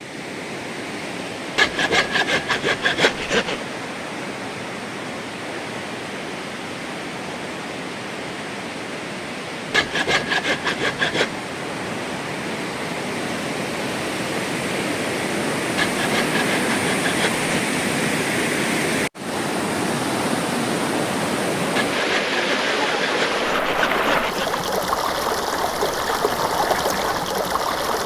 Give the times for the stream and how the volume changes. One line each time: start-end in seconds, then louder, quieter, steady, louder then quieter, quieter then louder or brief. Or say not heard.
0.0-28.0 louder.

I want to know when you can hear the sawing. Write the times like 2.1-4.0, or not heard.
1.6-3.6, 9.7-11.3, 15.8-17.6, 21.8-24.6.